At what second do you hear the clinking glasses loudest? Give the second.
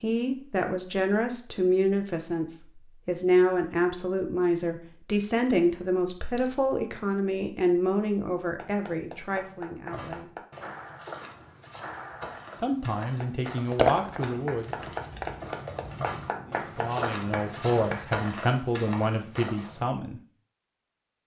14 s.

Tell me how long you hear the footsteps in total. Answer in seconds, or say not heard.
10 s.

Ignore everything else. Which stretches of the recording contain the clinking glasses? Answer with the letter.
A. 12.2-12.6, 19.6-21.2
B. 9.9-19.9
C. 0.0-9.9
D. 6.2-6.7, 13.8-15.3
D.